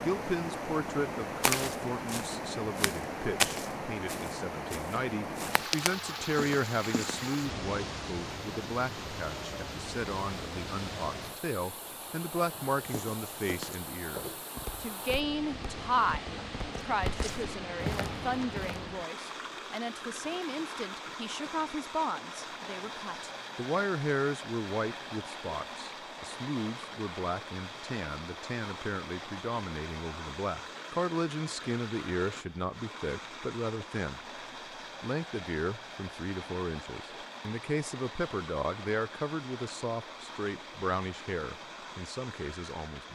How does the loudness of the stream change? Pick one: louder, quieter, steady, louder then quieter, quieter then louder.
quieter.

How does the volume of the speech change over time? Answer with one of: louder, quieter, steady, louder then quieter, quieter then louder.
steady.